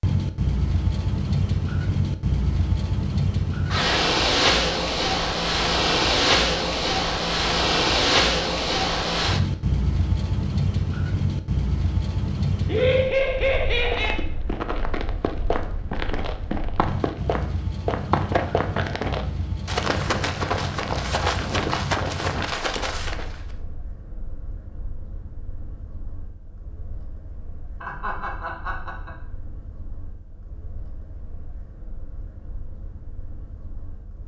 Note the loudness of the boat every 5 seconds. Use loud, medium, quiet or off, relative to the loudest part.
loud, loud, medium, quiet, quiet, quiet, quiet.